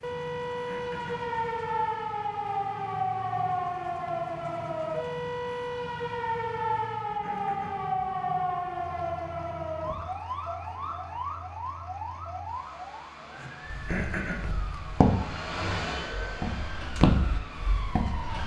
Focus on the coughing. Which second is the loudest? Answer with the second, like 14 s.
14 s.